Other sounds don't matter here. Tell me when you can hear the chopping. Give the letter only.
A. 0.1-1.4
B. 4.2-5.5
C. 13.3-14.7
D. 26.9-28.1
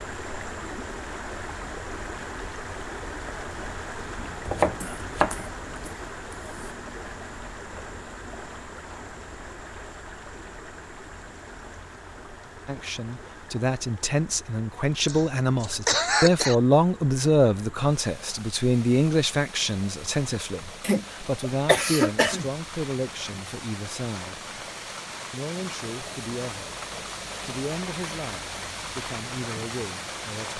B.